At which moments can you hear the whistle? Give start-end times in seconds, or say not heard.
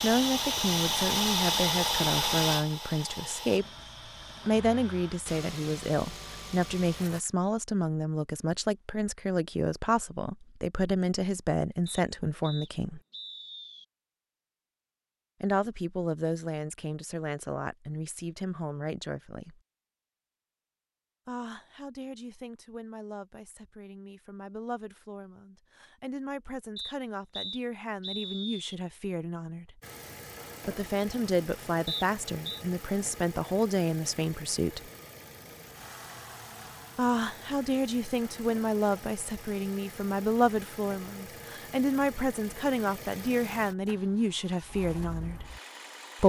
11.8-13.8, 26.8-28.8, 31.9-32.6.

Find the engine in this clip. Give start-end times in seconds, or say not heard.
0.0-7.2, 29.8-46.2.